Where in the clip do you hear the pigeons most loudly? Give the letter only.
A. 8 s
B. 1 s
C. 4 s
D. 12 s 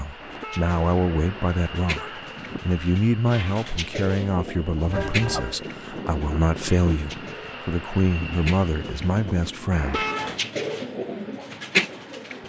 D.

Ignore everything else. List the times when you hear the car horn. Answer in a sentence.
The car horn can be heard from 0.2 to 2.2 s, from 4.8 to 5.5 s and from 9.7 to 10.4 s.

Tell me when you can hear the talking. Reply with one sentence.
You can hear the talking from 0.0 to 10.1 s.